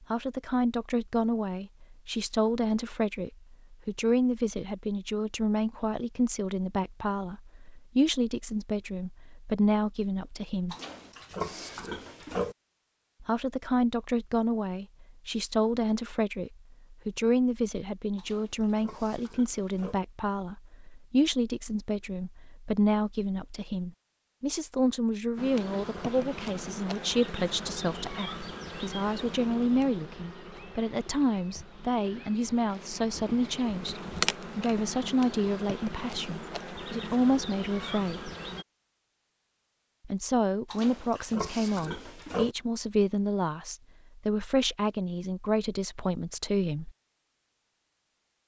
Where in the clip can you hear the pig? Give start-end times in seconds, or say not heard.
10.7-12.6, 18.1-20.0, 40.7-42.5.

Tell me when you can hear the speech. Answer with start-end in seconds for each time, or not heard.
0.1-10.8, 13.2-38.3, 40.0-46.9.